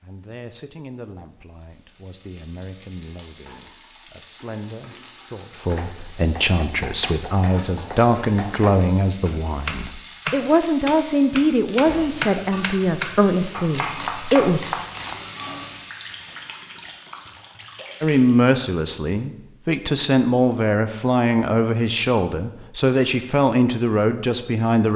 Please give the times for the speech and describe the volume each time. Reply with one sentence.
The speech can be heard from 0.0 to 14.7 s, getting louder; and from 18.0 to 24.9 s, at a steady volume.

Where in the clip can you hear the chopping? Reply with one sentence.
You can hear the chopping from 5.5 to 15.2 s.